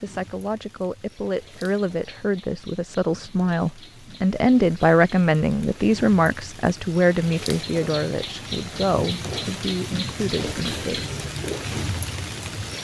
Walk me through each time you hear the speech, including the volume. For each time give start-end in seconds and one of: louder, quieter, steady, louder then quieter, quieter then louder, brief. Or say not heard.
0.0-11.1 louder then quieter.